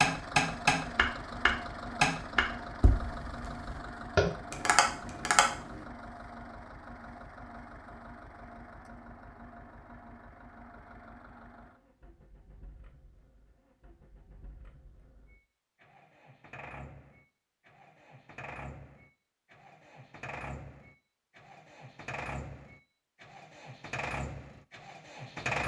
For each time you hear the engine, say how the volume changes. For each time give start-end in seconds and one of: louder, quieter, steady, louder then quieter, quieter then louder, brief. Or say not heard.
0.0-25.6 quieter then louder.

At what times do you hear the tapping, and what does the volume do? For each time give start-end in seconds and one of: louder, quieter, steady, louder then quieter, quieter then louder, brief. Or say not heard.
0.0-5.8 quieter then louder.